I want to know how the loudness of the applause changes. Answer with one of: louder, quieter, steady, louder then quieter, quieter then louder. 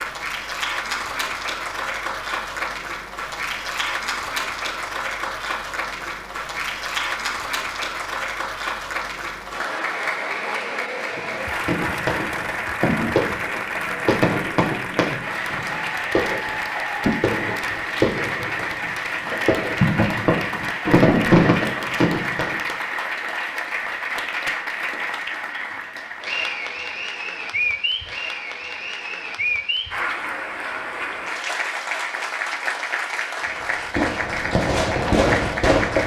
steady.